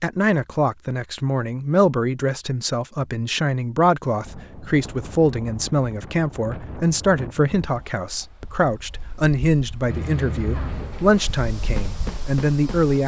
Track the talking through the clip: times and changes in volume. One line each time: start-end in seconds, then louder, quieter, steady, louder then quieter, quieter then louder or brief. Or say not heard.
0.0-13.0 steady.